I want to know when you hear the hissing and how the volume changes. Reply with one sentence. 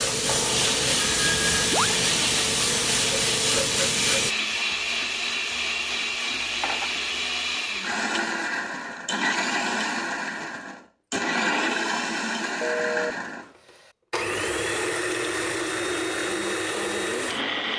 The hissing can be heard from 0.0 to 4.3 s, at a steady volume.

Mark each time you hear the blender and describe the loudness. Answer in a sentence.
You can hear the blender from 0.0 to 17.7 s, at a steady volume.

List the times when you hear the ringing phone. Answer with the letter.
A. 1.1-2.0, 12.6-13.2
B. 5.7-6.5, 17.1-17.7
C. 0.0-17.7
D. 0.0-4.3
A.